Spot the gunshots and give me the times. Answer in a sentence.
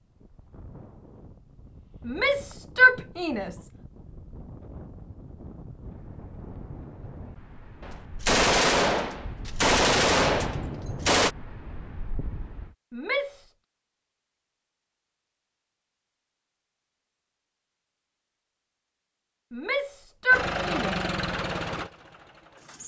The gunshots can be heard from 7.8 to 11.3 s.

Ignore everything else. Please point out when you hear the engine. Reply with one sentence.
You can hear the engine from 20.3 to 22.8 s.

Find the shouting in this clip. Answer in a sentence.
You can hear the shouting from 2.0 to 3.6 s, from 12.9 to 13.6 s and from 19.5 to 20.9 s.